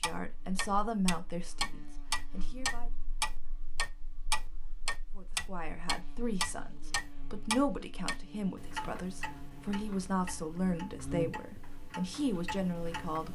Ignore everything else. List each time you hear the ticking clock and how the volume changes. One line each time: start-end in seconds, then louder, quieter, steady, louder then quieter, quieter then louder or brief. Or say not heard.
0.0-13.2 quieter.